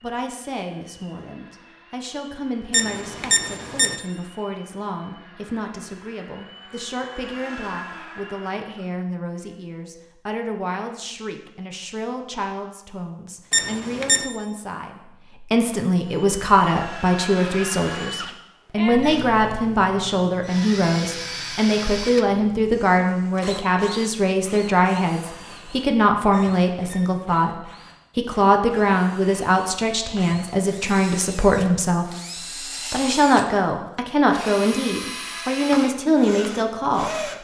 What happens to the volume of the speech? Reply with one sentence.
The volume of the speech goes up.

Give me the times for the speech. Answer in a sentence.
You can hear the speech from 0.0 to 37.1 s.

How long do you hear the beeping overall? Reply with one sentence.
The beeping can be heard for 3 seconds in total.